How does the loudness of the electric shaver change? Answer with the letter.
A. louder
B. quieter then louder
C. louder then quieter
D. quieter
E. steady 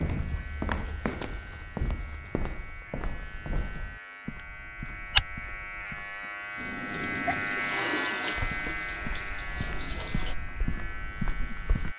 C.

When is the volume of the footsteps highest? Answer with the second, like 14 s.
5 s.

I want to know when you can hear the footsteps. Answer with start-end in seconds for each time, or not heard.
0.0-6.2, 8.3-11.9.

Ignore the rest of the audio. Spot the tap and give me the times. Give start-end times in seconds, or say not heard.
6.5-10.3.